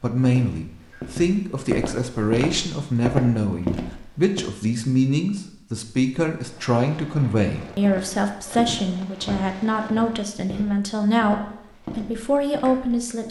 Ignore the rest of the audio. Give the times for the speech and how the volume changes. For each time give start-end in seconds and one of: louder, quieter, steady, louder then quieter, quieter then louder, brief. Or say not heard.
0.0-13.2 steady.